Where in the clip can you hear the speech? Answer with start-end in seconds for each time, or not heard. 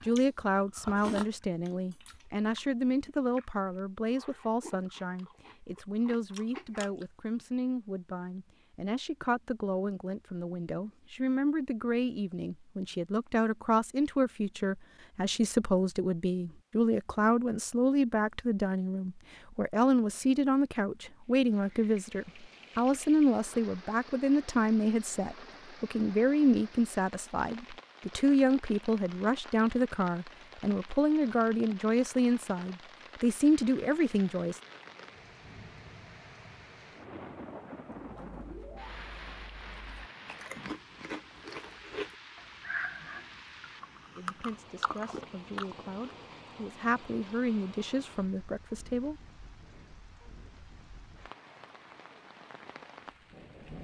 0.0-34.6, 44.1-49.1.